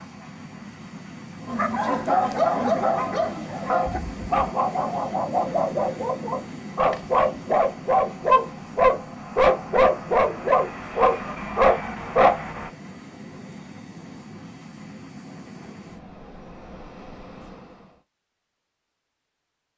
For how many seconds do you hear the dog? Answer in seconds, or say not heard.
11 s.